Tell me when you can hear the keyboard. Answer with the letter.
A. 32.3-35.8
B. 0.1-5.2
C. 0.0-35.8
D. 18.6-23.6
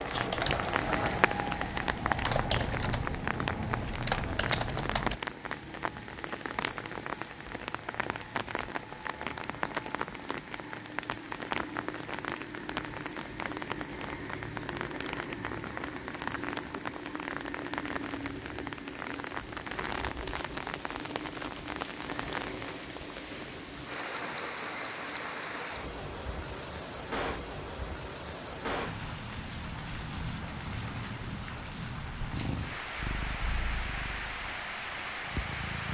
B.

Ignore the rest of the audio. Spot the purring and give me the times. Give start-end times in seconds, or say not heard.
32.3-35.8.